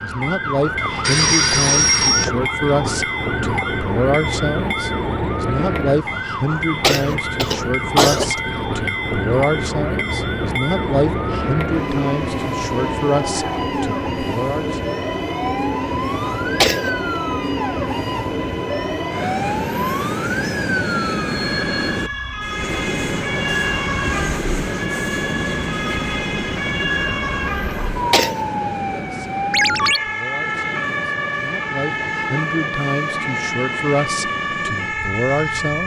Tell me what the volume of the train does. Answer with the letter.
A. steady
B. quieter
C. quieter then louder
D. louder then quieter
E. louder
B.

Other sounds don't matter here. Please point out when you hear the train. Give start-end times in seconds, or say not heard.
0.0-35.8.